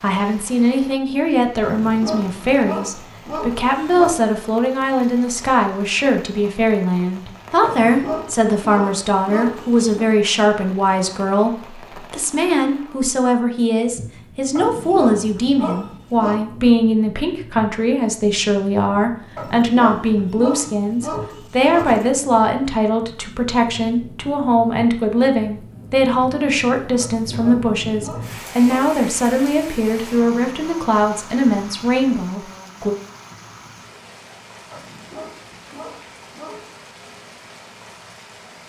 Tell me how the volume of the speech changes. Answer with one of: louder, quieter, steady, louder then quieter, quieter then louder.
steady.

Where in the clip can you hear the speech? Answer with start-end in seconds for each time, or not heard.
0.0-33.0.